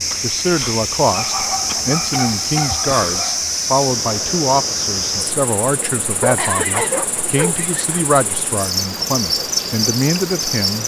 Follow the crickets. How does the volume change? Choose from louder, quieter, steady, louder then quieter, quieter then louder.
quieter then louder.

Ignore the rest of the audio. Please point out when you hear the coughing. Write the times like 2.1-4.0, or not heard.
1.6-2.8, 6.3-7.2.